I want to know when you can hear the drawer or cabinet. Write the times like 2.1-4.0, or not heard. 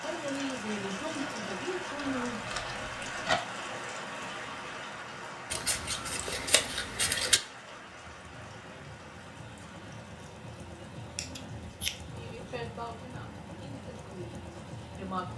not heard.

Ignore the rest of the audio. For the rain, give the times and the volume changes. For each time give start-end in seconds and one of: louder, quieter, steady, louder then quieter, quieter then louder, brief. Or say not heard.
0.0-15.3 quieter.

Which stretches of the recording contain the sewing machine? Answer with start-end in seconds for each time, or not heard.
7.8-15.3.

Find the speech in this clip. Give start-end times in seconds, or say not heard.
0.0-2.5, 12.1-15.3.